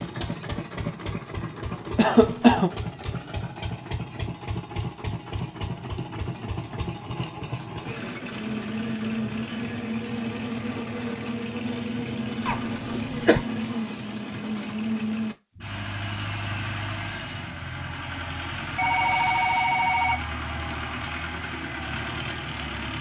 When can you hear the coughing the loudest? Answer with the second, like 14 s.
2 s.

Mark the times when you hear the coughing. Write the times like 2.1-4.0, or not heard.
1.9-2.7, 12.4-13.4.